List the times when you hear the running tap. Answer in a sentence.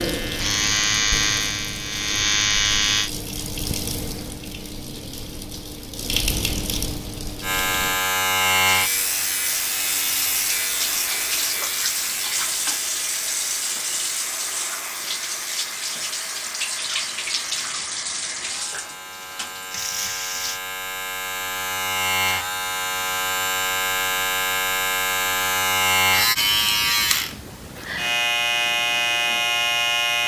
The running tap can be heard from 0.0 to 20.6 s.